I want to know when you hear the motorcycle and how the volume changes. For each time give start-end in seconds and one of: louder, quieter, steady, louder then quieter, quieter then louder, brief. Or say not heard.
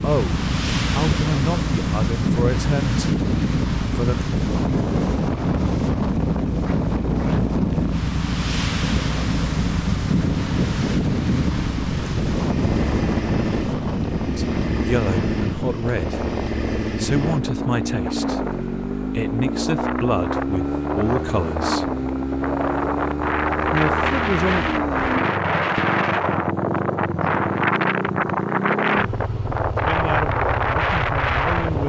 0.0-31.8 steady.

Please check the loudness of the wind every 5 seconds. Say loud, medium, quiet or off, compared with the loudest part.
loud, loud, loud, medium, loud, loud, loud.